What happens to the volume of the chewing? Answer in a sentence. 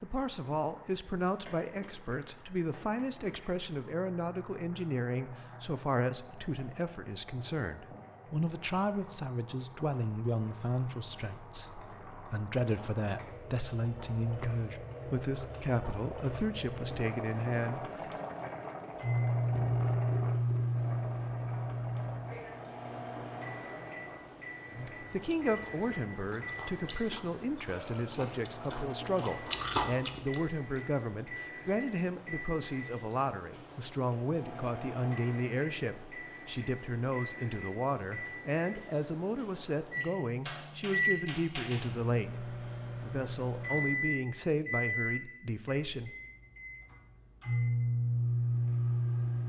The volume of the chewing goes up.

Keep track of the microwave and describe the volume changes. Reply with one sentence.
The volume of the microwave goes down, then up.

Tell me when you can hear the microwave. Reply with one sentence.
You can hear the microwave from 18.9 to 49.4 s.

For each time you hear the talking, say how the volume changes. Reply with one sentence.
The talking can be heard from 0.0 to 18.1 s, at a steady volume; and from 24.7 to 46.1 s, at a steady volume.